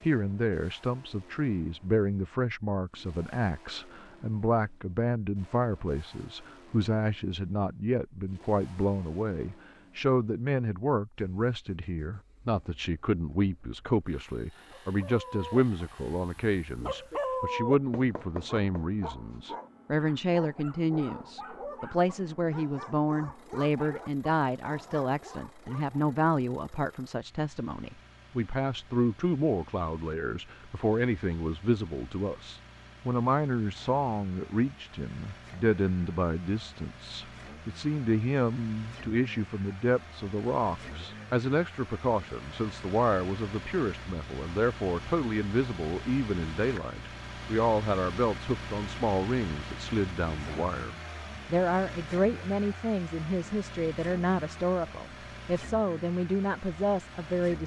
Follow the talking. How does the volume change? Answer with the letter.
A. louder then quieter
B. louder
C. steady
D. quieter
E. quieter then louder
C.